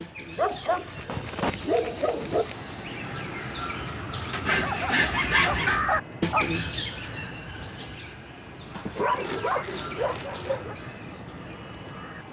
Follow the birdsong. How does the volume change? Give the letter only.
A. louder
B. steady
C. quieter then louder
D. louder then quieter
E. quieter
D.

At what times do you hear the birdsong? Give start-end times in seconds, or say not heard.
0.0-12.2.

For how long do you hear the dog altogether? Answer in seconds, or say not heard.
6 s.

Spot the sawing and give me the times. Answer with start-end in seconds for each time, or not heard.
0.5-2.5, 4.3-5.8, 8.7-10.6.